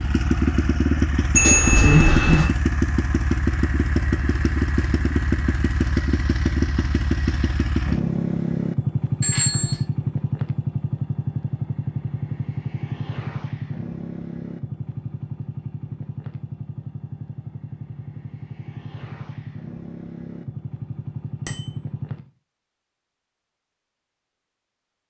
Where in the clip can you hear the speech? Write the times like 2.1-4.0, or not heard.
not heard.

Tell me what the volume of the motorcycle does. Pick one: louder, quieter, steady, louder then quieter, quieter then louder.
quieter.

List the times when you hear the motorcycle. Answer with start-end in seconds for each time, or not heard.
0.0-22.2.